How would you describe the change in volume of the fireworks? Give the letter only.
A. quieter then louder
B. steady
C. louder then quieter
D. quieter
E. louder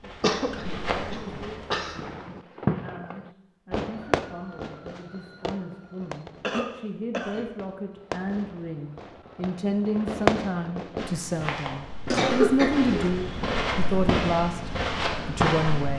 A.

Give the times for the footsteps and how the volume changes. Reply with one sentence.
You can hear the footsteps briefly from 0.0 to 1.6 s; and from 10.9 to 15.9 s, getting louder.